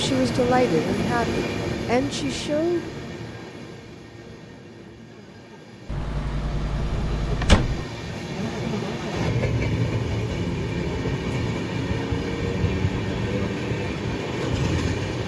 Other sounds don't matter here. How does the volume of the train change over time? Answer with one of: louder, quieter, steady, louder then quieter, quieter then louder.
quieter then louder.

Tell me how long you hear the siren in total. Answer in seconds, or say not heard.
not heard.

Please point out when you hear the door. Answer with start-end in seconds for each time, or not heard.
5.8-7.8.